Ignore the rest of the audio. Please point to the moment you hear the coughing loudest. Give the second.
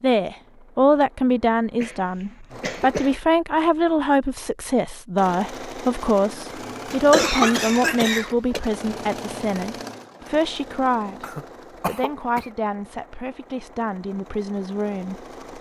7 s.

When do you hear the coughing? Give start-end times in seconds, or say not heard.
1.8-3.1, 6.9-8.6, 11.2-12.5.